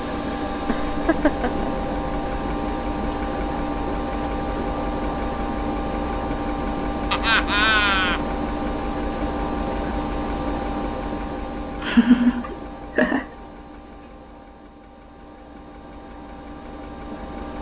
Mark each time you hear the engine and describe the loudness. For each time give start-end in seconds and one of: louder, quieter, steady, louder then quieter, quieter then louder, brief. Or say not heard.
0.0-17.5 quieter.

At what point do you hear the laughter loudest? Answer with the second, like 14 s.
12 s.